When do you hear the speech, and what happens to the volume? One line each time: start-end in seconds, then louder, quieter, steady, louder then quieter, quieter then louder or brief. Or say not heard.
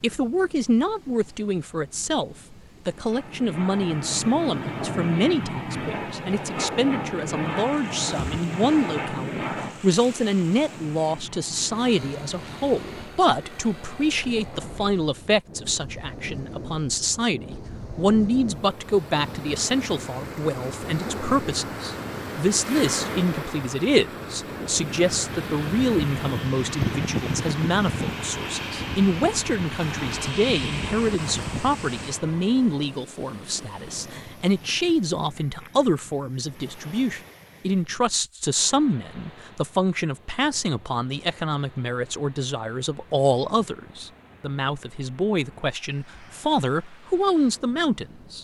0.0-48.3 steady.